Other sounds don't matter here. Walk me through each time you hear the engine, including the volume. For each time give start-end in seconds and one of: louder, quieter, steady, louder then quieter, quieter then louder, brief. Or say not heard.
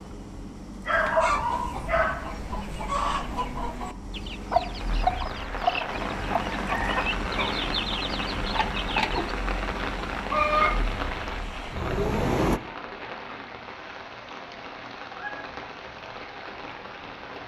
0.0-12.6 louder.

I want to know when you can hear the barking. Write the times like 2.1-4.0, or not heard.
0.8-2.4.